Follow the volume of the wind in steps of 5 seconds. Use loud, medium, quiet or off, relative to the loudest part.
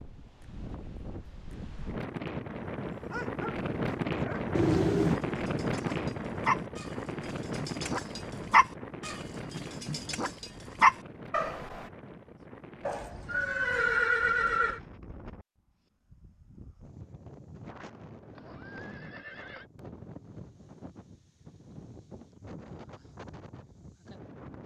loud, loud, quiet, quiet, quiet.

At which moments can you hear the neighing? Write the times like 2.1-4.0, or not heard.
4.5-5.2, 12.8-14.8, 18.4-19.6.